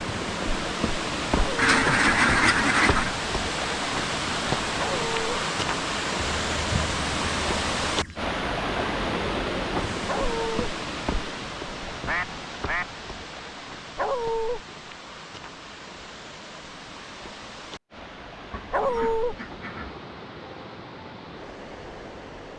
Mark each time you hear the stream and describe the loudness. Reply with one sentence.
You can hear the stream from 0.0 to 22.5 s, getting quieter.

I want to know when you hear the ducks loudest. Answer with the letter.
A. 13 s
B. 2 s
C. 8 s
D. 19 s
B.